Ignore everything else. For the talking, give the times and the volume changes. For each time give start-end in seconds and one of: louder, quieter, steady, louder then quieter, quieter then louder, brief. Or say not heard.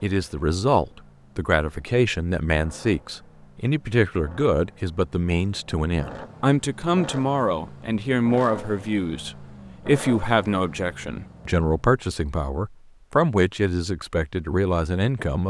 0.0-15.4 steady.